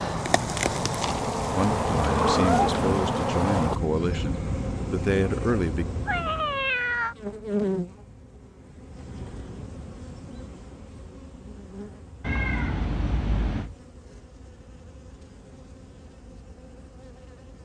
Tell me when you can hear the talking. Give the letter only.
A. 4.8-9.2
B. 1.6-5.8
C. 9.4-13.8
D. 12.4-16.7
B.